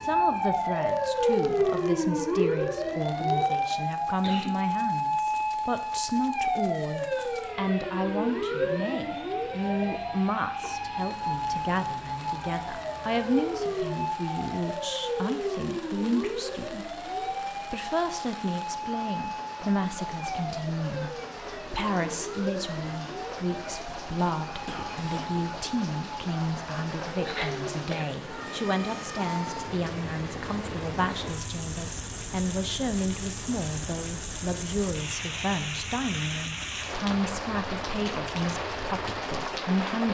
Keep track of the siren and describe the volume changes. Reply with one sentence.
The volume of the siren goes down.